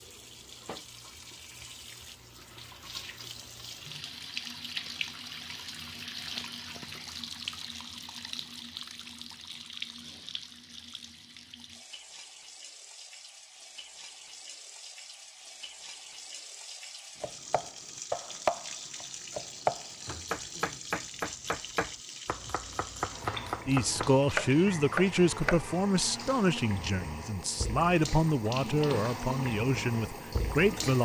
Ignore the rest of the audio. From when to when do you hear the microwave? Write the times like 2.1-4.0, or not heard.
not heard.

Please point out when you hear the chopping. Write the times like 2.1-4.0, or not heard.
17.2-25.6.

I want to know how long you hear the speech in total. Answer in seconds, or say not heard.
7 s.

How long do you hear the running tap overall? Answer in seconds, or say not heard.
31 s.